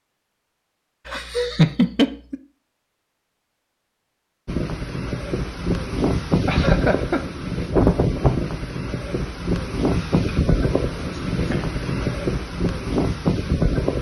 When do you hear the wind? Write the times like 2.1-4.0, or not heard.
4.5-13.9.